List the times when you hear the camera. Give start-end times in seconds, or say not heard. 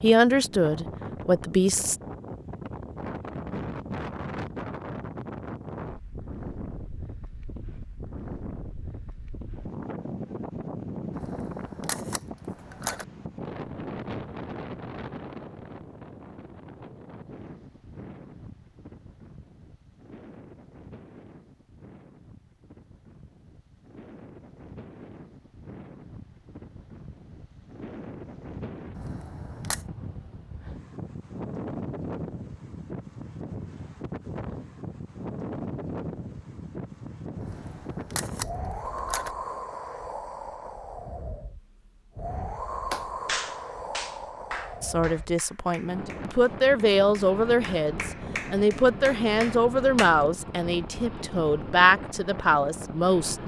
11.1-13.1, 28.9-29.9, 37.4-39.4.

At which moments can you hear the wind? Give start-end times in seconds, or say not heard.
0.0-53.4.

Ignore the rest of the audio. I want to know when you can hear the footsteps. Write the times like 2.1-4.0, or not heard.
not heard.